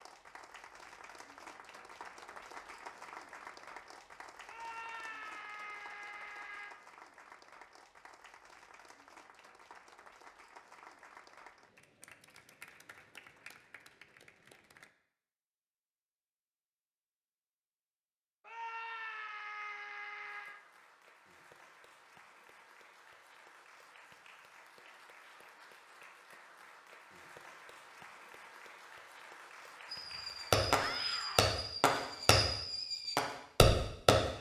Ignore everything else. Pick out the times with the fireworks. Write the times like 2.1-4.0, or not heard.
29.9-34.1.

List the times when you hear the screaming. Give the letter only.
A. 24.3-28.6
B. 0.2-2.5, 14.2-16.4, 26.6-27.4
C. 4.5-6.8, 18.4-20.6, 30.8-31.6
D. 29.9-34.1
C.